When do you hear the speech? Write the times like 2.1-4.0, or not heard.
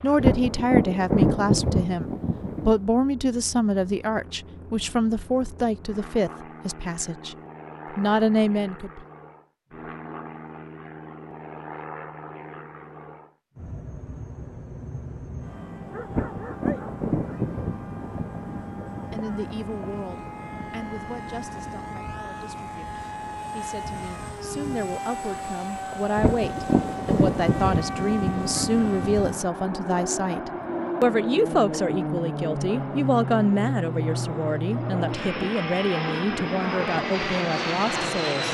0.0-9.1, 19.1-38.4.